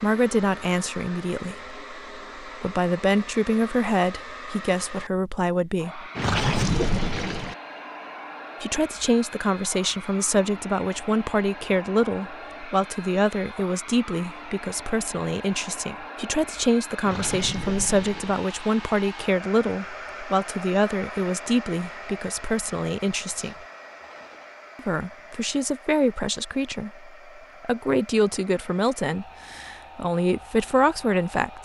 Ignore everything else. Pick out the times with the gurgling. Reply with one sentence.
You can hear the gurgling from 6.2 to 7.5 s and from 17.0 to 18.4 s.